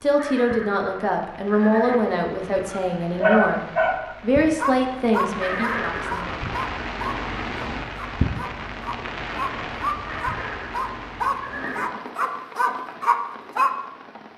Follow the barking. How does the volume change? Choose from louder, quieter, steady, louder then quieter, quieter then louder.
quieter then louder.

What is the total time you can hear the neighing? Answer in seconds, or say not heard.
5 s.